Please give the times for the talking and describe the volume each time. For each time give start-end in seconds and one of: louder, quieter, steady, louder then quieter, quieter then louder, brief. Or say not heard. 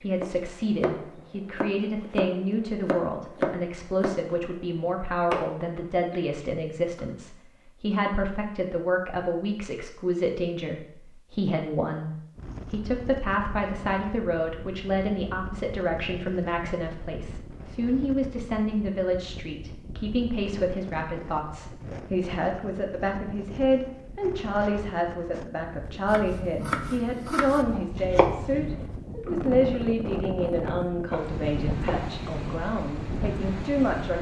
0.0-34.1 steady.